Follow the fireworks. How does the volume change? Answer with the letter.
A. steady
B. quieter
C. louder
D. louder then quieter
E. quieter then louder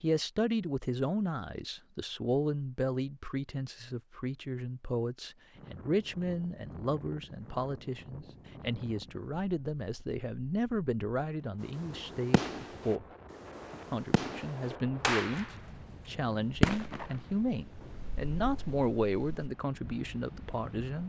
D.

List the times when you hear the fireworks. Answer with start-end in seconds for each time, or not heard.
11.8-15.6, 16.5-19.5.